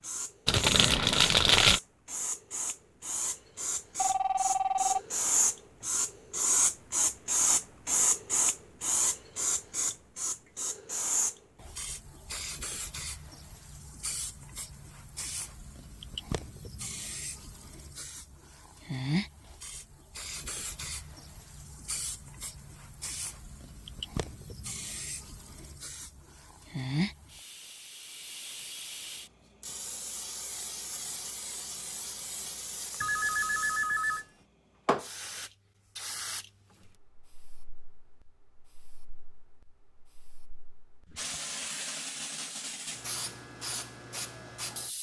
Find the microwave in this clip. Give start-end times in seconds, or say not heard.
not heard.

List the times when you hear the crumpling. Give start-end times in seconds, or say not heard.
0.5-1.8.